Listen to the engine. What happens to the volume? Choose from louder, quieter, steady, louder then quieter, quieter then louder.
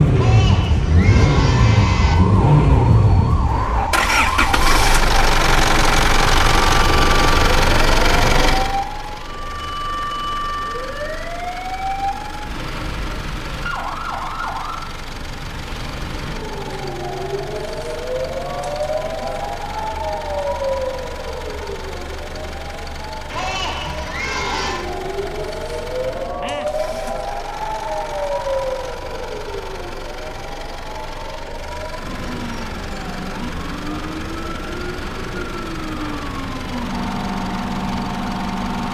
quieter.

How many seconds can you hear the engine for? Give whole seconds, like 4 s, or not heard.
39 s.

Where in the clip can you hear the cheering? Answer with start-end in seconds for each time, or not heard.
0.1-2.1, 23.3-24.9.